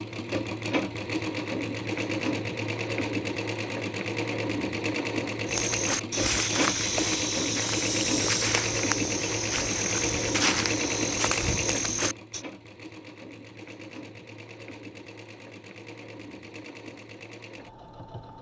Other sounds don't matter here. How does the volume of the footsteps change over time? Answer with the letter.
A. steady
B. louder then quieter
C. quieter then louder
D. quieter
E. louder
A.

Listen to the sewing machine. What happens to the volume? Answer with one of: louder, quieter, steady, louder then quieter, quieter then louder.
quieter.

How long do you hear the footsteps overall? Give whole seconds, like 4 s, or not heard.
7 s.